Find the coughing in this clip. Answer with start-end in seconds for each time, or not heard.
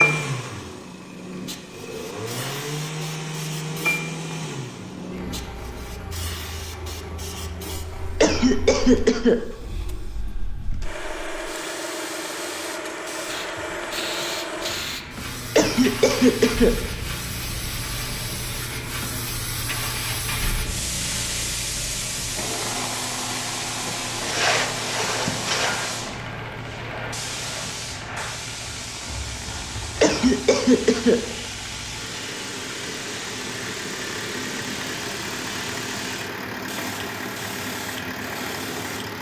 8.2-9.3, 15.6-16.7, 30.0-31.1.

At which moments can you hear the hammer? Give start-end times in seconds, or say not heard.
not heard.